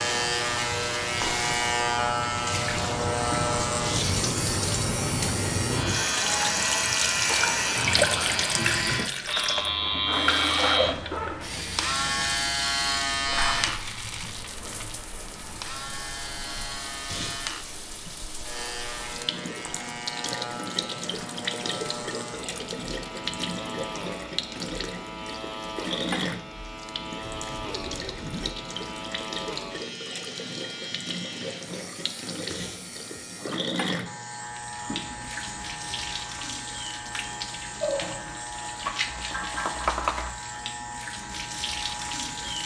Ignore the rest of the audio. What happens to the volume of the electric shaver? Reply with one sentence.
The loudness of the electric shaver goes down.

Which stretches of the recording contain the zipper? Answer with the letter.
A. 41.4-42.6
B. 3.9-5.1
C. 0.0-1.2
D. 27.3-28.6
D.